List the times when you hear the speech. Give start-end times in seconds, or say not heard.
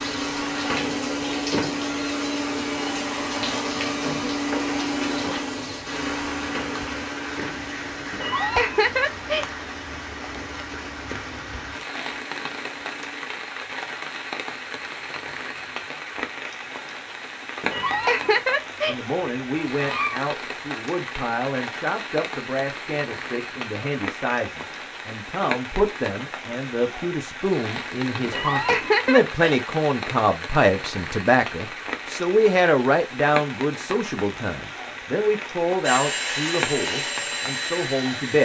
18.9-38.3.